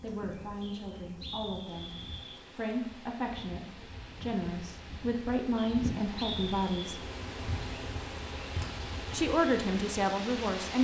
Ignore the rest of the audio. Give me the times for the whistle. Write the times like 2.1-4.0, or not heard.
0.6-2.4, 5.5-7.0.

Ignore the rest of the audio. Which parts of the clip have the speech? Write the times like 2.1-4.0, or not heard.
0.0-1.9, 2.5-7.0, 9.1-10.7.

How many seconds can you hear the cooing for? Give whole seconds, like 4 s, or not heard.
not heard.